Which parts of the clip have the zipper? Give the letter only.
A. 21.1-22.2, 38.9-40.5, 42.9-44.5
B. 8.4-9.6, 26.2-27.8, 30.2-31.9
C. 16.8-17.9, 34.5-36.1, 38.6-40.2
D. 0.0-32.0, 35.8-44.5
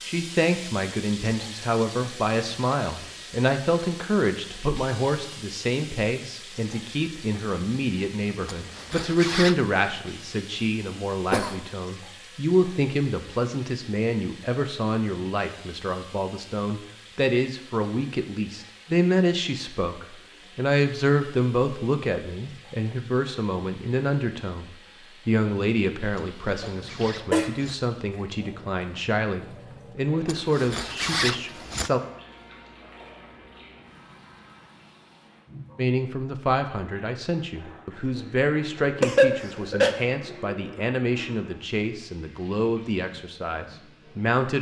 B.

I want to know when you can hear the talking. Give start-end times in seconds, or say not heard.
0.0-32.0, 35.8-44.5.